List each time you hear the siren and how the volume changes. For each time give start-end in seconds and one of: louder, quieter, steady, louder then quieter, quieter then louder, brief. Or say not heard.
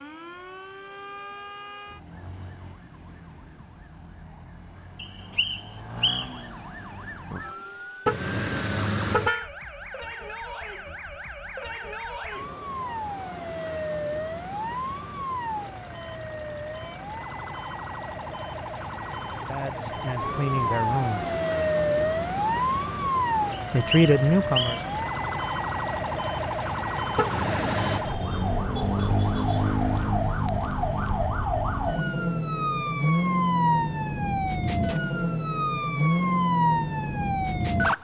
0.0-37.9 louder.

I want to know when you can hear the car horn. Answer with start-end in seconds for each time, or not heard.
8.1-9.5, 27.1-28.0.